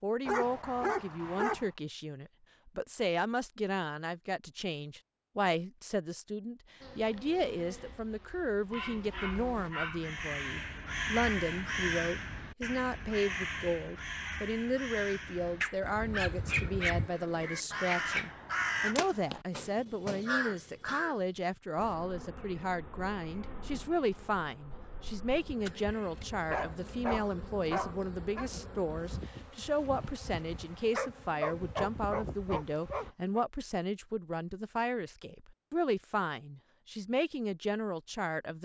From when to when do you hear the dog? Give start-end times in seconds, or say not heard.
0.2-1.7, 8.7-10.2, 15.6-18.3, 25.6-28.5, 30.9-33.5.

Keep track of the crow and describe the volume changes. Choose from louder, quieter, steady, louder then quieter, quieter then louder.
quieter then louder.